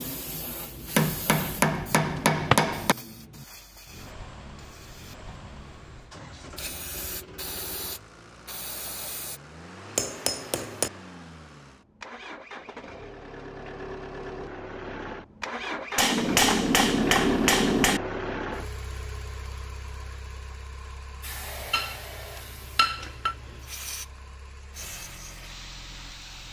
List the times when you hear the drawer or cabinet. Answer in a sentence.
You can hear the drawer or cabinet from 2.1 to 2.6 s.